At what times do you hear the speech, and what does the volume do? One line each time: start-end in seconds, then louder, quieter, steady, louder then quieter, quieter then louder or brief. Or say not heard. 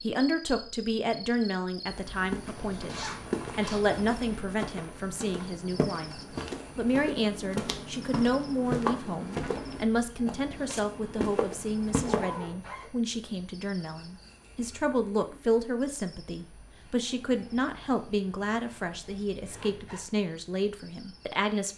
0.0-21.7 steady.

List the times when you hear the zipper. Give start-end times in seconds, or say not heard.
2.5-4.5, 12.0-12.9, 19.4-20.1.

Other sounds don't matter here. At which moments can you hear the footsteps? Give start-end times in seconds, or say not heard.
1.9-12.4.